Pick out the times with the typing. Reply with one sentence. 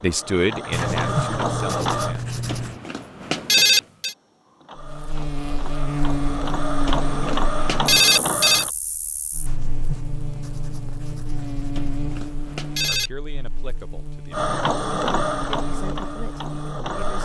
You can't hear the typing here.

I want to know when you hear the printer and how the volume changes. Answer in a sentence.
You can hear the printer briefly from 0.0 to 2.1 s; from 4.0 to 8.7 s, getting louder; and briefly from 14.3 to 17.2 s.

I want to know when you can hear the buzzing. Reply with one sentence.
The buzzing can be heard from 4.8 to 16.9 s.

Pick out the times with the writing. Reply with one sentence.
You can hear the writing from 0.7 to 2.8 s and from 9.4 to 12.4 s.